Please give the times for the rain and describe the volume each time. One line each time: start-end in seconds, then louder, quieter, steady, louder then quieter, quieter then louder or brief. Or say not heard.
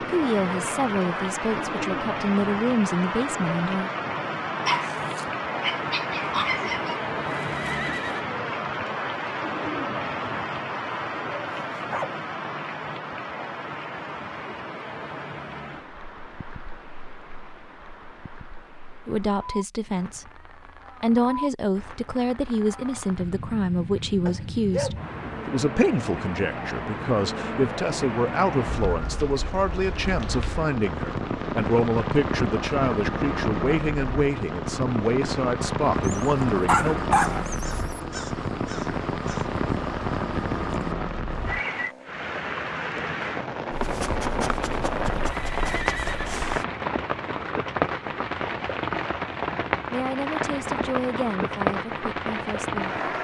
0.0-53.1 quieter then louder.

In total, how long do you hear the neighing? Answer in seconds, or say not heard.
2 s.